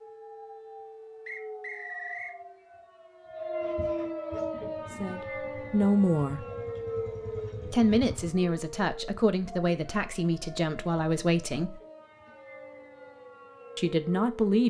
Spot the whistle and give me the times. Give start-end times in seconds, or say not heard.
1.2-2.4.